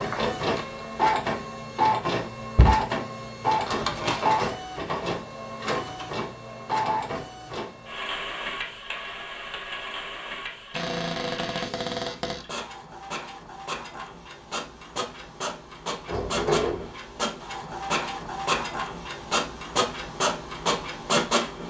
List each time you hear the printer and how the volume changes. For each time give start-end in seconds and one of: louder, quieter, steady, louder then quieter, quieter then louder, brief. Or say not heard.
0.0-21.6 quieter then louder.